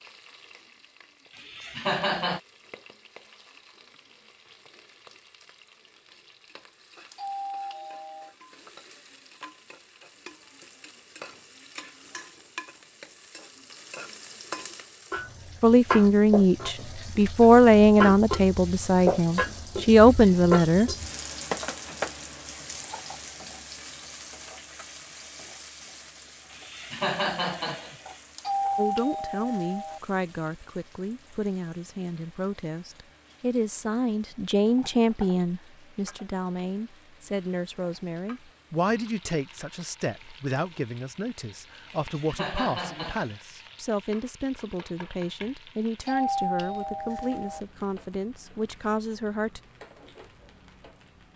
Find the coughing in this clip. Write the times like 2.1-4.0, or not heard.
1.4-2.4, 26.5-28.2, 41.9-43.6.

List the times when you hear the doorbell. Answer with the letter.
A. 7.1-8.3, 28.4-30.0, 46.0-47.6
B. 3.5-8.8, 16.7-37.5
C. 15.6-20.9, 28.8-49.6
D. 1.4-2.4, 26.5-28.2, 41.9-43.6
A.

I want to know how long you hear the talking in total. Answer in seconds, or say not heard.
26 s.